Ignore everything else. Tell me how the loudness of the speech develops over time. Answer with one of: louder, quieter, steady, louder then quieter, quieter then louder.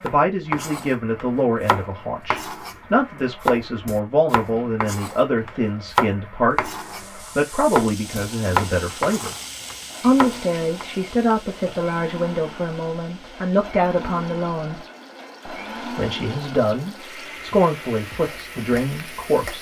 steady.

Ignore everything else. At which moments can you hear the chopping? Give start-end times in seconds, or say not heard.
0.1-2.8, 3.4-7.0, 7.7-10.8.